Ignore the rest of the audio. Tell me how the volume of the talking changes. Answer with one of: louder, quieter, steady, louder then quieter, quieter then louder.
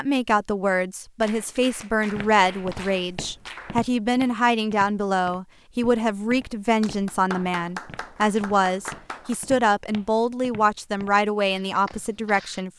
steady.